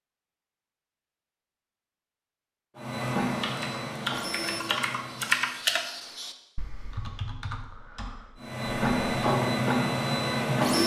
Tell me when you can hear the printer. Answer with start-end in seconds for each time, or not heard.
2.8-5.5, 8.3-10.8.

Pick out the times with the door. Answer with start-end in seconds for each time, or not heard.
not heard.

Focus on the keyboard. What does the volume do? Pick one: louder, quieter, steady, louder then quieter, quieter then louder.
louder then quieter.